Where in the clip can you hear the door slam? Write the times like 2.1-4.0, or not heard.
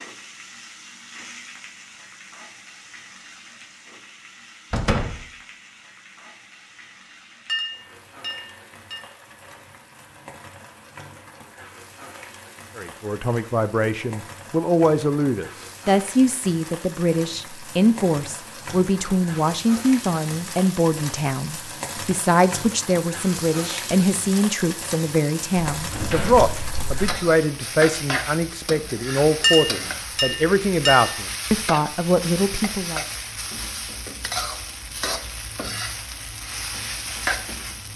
4.7-5.2, 25.7-27.2.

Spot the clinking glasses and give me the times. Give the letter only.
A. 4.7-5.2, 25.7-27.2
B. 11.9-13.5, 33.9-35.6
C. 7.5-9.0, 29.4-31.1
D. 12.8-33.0
C.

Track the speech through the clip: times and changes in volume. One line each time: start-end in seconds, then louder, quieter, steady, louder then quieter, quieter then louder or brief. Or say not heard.
12.8-33.0 steady.